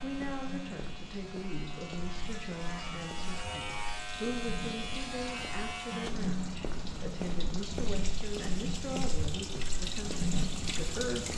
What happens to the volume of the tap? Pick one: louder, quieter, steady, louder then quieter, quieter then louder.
louder.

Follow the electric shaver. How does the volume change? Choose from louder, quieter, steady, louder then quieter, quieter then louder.
louder.